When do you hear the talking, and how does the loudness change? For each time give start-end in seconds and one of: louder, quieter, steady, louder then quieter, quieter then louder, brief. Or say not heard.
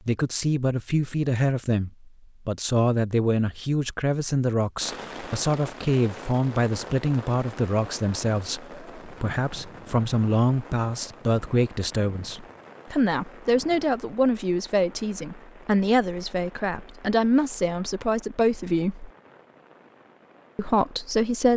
0.1-19.1 steady
20.6-21.5 brief.